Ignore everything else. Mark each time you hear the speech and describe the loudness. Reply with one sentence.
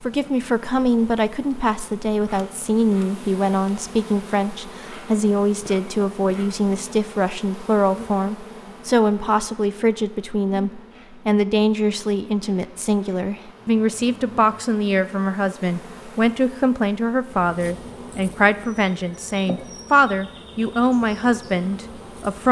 The speech can be heard from 0.1 to 22.4 s, at a steady volume.